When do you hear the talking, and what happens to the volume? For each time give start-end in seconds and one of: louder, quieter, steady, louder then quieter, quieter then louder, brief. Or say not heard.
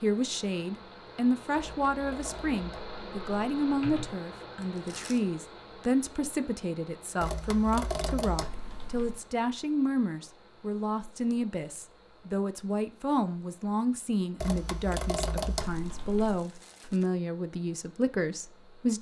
0.0-18.9 steady.